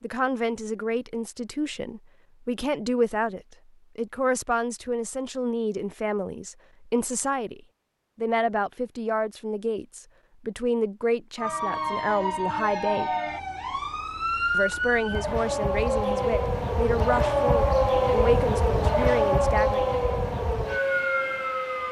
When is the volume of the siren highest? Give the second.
18 s.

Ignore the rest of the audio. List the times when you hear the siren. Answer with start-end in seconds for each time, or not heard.
11.3-21.8.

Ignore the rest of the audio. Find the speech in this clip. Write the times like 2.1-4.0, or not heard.
0.0-13.1, 14.5-19.9.